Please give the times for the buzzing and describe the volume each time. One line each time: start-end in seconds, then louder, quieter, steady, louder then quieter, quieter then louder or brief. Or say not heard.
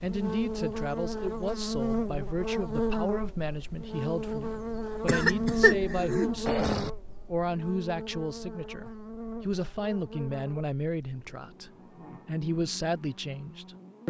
0.0-14.0 quieter.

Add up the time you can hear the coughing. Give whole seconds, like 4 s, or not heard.
2 s.